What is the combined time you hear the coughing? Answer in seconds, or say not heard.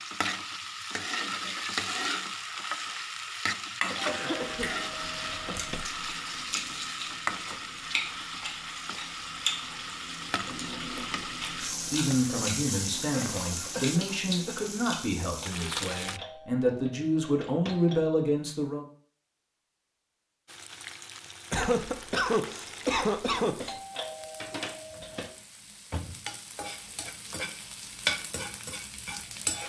5 s.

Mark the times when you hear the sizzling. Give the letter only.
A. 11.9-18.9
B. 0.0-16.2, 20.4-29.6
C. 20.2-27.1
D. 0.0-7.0
B.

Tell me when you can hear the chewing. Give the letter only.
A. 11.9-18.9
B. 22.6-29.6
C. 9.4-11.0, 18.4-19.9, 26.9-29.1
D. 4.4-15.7
D.